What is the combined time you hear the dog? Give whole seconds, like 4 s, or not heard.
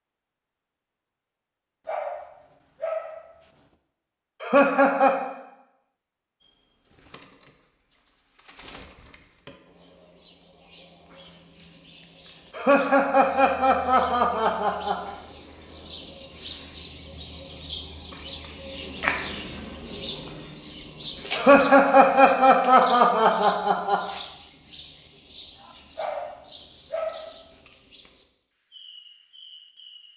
3 s.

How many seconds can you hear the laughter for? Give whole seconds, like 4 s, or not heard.
6 s.